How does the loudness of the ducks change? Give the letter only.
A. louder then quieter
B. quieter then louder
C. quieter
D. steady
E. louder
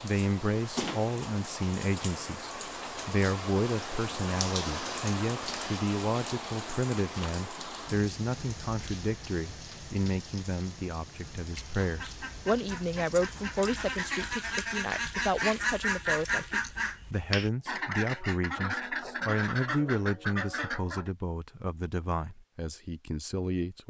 E.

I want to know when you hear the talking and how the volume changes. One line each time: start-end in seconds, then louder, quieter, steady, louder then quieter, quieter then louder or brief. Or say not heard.
0.0-23.8 steady.